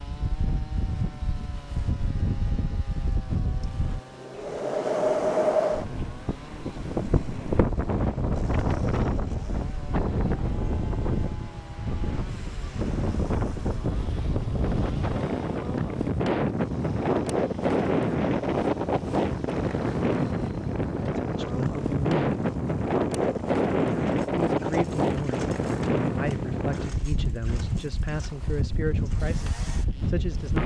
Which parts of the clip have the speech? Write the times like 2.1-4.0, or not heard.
20.9-22.4, 24.4-30.6.